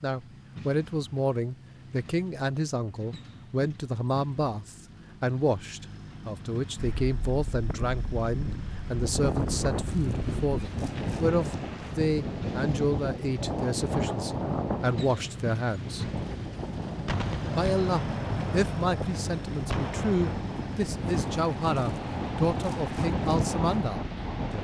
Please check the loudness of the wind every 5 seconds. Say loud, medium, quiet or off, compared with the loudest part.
off, loud, loud, medium, loud.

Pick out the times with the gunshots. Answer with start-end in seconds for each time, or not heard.
17.1-20.4.